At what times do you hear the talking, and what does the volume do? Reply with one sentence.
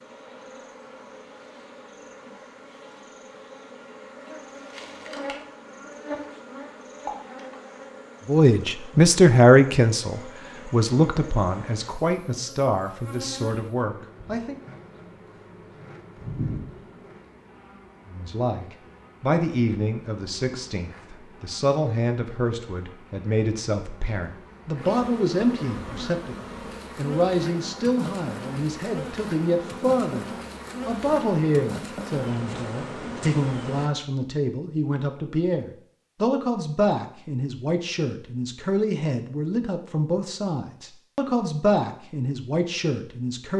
The talking can be heard from 8.2 to 14.6 s, getting quieter; and from 18.1 to 43.5 s, at a steady volume.